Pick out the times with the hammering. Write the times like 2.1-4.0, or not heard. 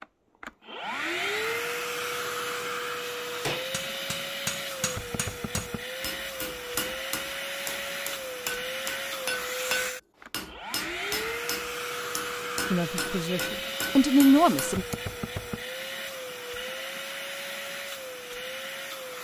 3.5-14.9.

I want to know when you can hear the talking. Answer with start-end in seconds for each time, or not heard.
12.7-14.8.